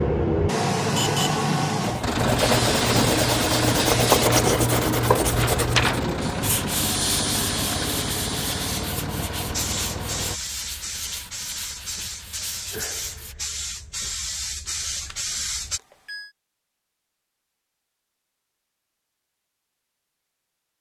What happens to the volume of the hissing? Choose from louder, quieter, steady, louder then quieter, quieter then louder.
quieter.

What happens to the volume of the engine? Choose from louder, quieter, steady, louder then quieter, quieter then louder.
quieter.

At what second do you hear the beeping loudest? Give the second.
1 s.